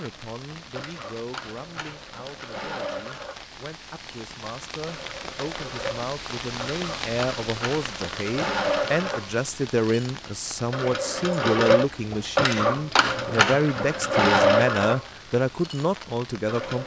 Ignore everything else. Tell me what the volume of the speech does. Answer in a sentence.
The volume of the speech goes up.